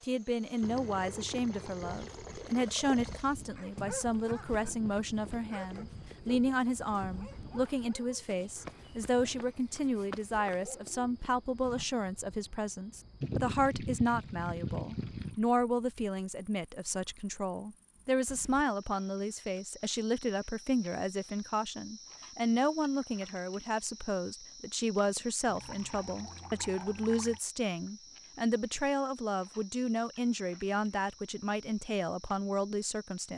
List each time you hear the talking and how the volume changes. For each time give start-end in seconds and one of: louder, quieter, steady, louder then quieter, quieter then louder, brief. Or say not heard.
0.0-33.3 steady.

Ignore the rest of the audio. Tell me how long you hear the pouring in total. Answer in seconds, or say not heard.
7 s.